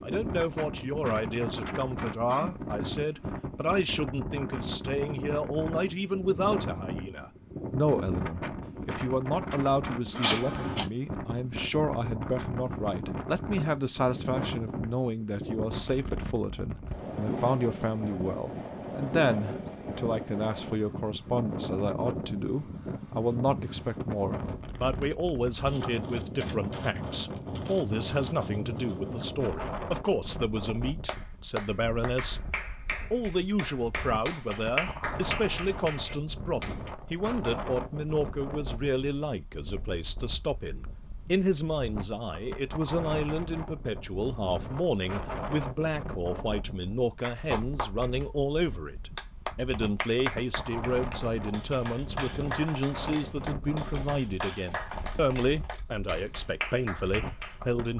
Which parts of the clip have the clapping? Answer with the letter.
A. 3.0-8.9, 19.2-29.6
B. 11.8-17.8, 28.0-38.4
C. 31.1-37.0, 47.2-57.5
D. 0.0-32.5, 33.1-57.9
C.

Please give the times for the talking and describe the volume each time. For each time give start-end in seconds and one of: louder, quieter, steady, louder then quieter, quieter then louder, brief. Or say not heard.
0.0-32.5 steady
33.1-57.9 steady.